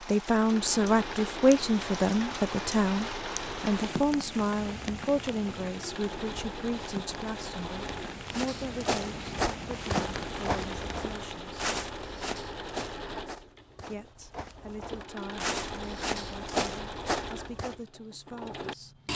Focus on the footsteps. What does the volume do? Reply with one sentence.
The loudness of the footsteps goes down, then up.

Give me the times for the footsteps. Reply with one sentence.
You can hear the footsteps from 8.2 to 17.8 s.